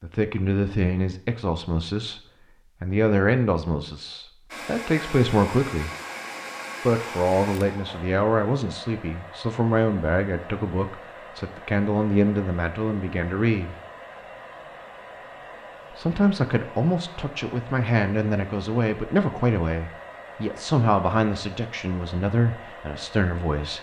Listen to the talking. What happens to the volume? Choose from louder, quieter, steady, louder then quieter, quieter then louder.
steady.